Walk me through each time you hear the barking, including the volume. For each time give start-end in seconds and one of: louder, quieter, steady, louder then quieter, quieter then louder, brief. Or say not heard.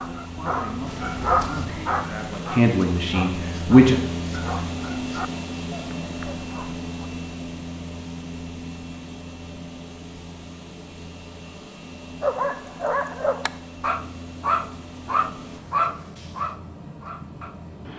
0.0-6.8 quieter
12.2-17.7 quieter.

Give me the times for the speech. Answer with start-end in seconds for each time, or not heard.
0.1-4.0.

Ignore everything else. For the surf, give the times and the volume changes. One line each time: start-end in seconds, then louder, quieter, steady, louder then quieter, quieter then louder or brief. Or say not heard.
not heard.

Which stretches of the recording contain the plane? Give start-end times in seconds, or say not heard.
0.0-17.9.